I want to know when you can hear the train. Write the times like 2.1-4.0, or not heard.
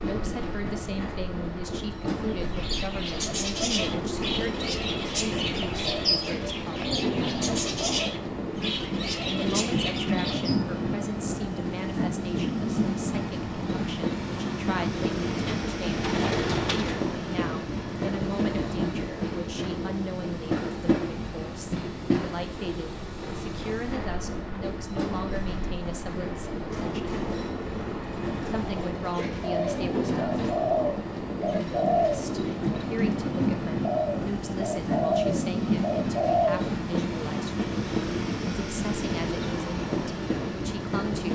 0.0-41.3.